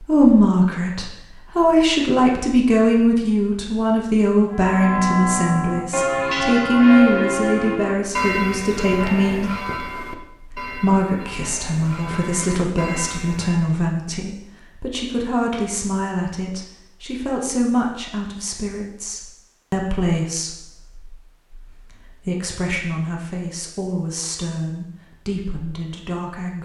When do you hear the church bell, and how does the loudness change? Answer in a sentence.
The church bell can be heard from 4.5 to 13.8 s, getting quieter.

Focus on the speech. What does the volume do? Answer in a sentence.
The loudness of the speech goes down.